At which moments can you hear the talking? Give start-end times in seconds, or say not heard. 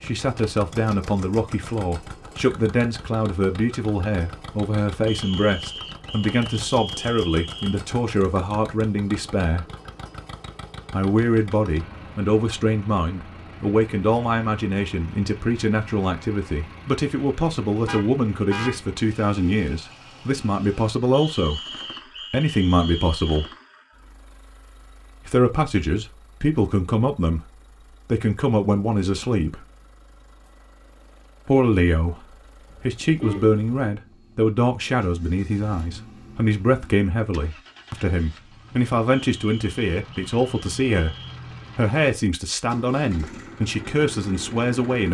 0.0-9.7, 10.9-23.5, 25.2-29.6, 31.4-41.1, 41.8-45.0.